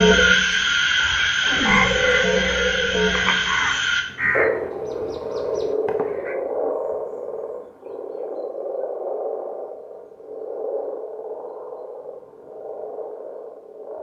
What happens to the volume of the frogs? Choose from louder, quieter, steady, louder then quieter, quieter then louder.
quieter.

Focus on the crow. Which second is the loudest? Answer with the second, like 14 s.
4 s.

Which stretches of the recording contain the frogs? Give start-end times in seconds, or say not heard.
0.0-13.9.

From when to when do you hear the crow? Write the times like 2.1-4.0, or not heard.
0.7-6.3.